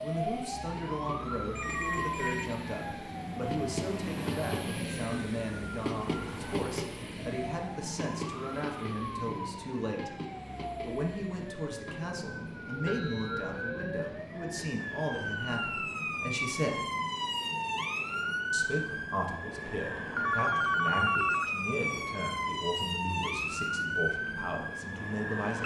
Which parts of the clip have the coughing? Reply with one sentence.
The coughing can't be heard in this clip.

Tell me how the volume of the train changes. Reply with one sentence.
The volume of the train goes down.